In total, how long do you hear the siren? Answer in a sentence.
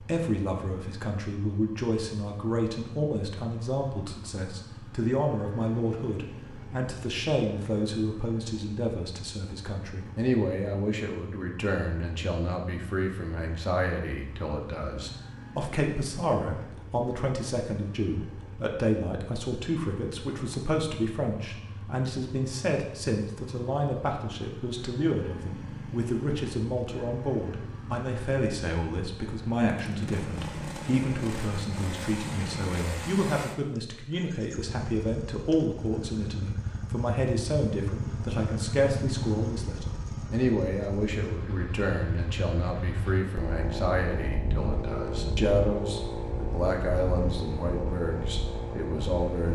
The siren can't be heard in this clip.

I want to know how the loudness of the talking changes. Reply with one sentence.
The volume of the talking stays about the same.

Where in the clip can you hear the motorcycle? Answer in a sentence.
You can hear the motorcycle from 0.0 to 49.5 s.